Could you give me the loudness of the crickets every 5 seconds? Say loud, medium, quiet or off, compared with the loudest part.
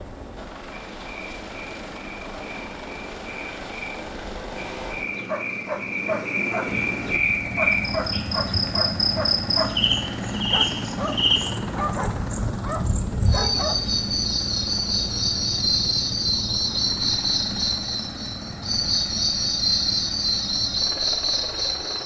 quiet, loud, loud, loud, loud.